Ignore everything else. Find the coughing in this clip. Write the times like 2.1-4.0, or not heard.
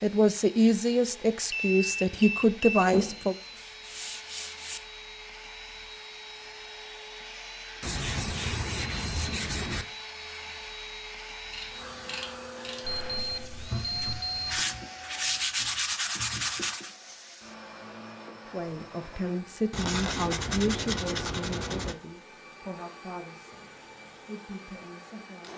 not heard.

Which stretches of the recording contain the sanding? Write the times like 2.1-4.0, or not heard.
2.9-4.8, 7.8-9.8, 14.0-16.9, 19.7-21.9.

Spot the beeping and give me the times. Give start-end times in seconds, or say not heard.
1.5-2.9, 12.8-14.7.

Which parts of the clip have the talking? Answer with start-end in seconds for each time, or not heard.
0.0-3.4, 18.4-25.5.